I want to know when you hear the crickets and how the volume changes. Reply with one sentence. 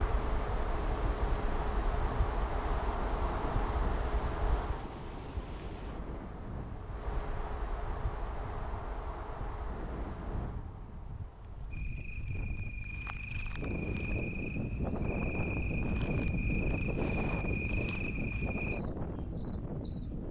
You can hear the crickets from 0.0 to 20.2 s, getting quieter then louder.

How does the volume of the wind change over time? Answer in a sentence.
The loudness of the wind goes up.